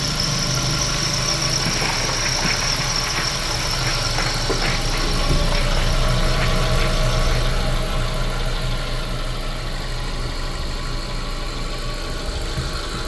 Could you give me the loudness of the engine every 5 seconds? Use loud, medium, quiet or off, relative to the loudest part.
loud, loud, medium.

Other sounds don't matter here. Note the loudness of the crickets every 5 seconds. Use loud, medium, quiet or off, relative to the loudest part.
loud, medium, off.